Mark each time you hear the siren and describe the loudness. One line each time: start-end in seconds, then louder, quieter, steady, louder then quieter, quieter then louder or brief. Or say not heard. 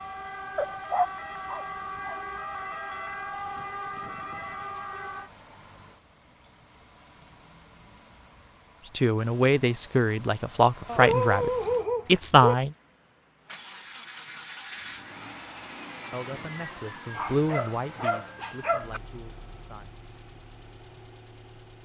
0.0-5.3 steady.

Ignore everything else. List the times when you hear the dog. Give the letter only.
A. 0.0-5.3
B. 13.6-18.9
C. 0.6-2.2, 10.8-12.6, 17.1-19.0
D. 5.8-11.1
C.